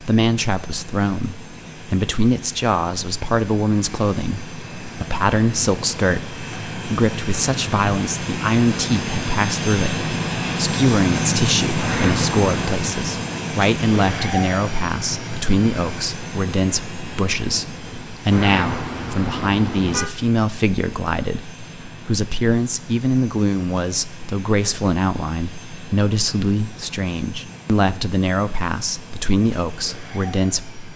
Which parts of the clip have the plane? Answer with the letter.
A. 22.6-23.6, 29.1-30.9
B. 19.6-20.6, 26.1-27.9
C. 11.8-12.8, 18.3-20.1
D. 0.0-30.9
D.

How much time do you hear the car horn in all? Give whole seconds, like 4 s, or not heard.
3 s.